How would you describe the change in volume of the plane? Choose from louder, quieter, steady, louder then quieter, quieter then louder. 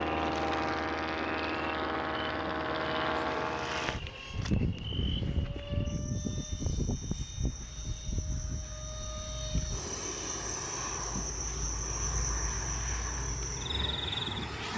quieter.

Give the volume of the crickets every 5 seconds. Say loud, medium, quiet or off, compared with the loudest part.
medium, medium, loud.